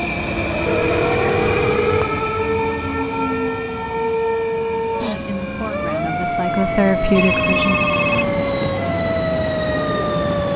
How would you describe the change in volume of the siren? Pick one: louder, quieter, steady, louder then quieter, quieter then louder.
steady.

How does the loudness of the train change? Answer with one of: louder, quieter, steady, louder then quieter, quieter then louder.
quieter then louder.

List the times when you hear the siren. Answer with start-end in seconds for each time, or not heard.
0.1-10.5.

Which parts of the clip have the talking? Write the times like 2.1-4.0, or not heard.
4.8-7.8.